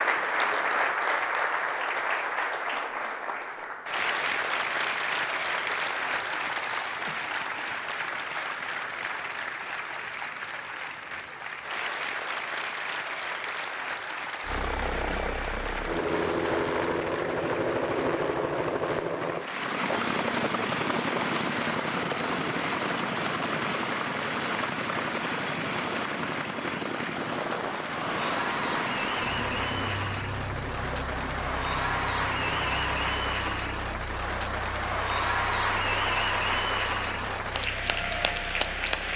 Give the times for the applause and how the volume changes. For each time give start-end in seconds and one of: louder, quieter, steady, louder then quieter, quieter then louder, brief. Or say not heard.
0.0-39.1 quieter then louder.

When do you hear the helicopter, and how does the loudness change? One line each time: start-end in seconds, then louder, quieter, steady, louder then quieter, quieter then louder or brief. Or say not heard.
14.4-39.1 quieter.